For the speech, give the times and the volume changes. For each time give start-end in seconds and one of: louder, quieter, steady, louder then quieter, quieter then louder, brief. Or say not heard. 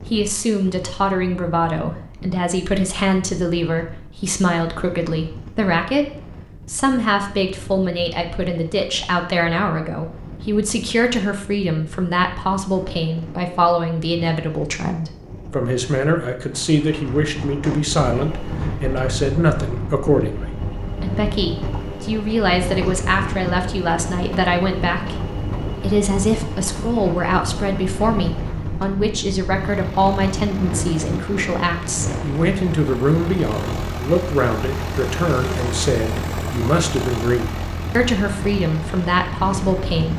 0.1-40.1 steady.